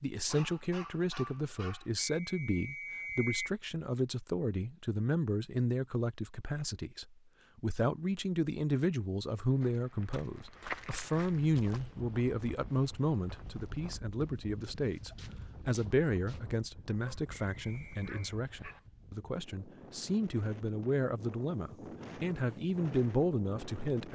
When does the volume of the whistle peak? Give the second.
3 s.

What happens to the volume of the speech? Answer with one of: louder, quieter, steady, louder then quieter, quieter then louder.
steady.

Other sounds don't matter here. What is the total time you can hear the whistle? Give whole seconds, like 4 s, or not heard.
3 s.